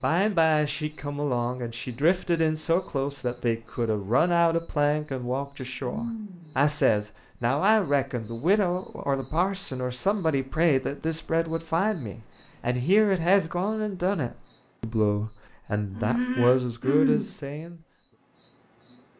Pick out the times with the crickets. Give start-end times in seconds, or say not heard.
0.0-19.0.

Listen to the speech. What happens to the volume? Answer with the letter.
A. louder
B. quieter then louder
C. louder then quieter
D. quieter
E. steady
E.